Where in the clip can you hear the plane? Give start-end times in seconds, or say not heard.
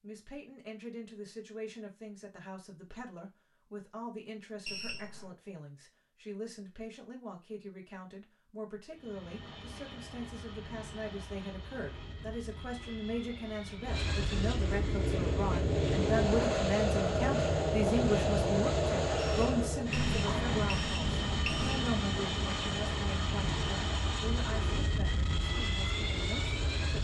8.9-26.9.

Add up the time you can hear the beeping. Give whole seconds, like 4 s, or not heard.
3 s.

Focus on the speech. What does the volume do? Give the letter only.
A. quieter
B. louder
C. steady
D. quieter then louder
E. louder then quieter
E.